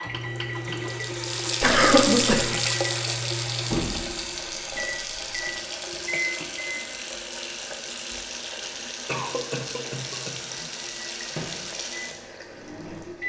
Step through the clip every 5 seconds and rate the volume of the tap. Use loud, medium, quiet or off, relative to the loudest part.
loud, medium, medium.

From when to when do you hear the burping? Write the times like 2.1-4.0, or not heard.
not heard.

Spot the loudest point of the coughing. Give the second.
2 s.